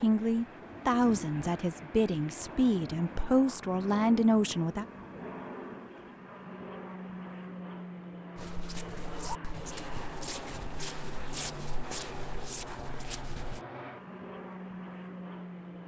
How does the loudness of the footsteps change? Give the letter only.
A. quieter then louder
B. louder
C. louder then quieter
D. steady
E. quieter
D.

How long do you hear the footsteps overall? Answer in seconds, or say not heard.
5 s.